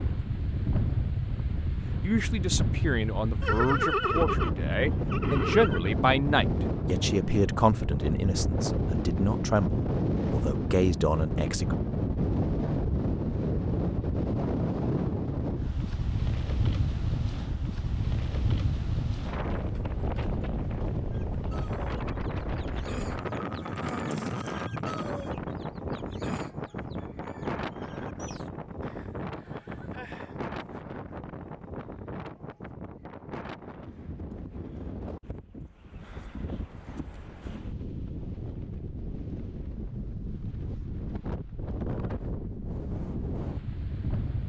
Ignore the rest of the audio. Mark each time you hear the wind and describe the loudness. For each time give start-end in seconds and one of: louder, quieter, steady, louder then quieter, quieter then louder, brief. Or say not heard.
0.0-44.4 quieter.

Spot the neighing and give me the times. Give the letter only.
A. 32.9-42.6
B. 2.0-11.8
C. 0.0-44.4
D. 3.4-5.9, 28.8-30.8
D.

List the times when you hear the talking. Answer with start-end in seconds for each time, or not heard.
2.0-11.8.